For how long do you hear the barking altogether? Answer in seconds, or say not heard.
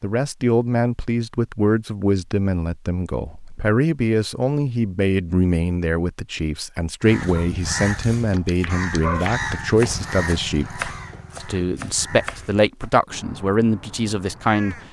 2 s.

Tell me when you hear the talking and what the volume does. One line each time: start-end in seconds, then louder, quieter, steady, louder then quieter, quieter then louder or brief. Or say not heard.
0.0-14.8 steady.